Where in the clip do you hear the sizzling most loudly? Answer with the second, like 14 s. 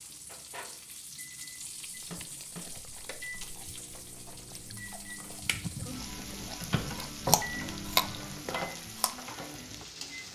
6 s.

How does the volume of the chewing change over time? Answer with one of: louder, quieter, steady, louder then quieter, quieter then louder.
louder.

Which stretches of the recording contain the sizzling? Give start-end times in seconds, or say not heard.
0.0-10.3.